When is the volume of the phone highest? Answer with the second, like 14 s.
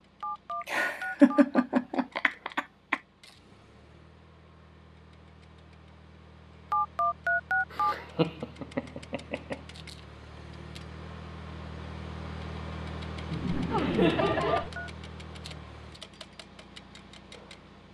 7 s.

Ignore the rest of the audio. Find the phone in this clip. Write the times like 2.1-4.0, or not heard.
0.2-1.6, 6.7-8.0, 14.2-14.9.